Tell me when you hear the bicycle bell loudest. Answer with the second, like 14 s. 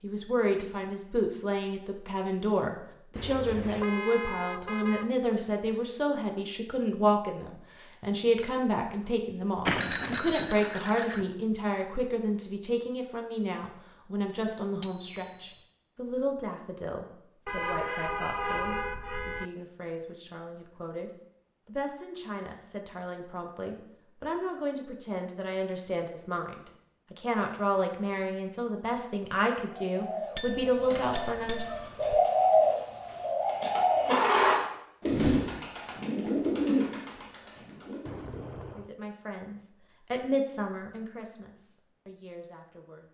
10 s.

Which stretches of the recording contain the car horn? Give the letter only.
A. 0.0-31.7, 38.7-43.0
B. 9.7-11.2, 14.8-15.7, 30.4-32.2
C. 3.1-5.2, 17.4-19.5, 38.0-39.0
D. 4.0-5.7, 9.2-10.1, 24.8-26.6
C.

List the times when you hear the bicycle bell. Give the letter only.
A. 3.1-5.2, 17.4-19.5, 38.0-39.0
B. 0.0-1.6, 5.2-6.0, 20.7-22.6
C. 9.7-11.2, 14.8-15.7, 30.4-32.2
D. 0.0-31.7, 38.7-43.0
C.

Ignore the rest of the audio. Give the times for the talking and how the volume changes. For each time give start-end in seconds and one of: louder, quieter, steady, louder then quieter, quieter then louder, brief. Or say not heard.
0.0-31.7 quieter then louder
38.7-43.0 louder then quieter.